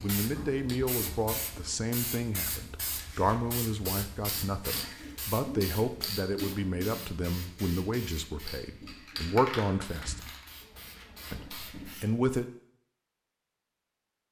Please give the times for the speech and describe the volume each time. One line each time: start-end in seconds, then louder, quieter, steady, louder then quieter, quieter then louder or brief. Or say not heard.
0.0-10.3 steady
11.3-12.4 brief.